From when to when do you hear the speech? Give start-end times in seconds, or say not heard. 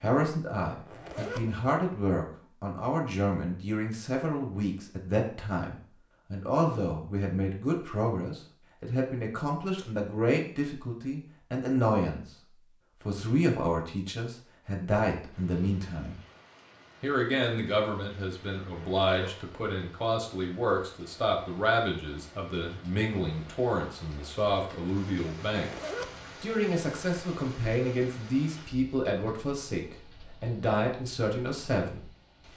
0.0-12.2, 13.0-16.1, 17.0-25.8, 26.4-32.0.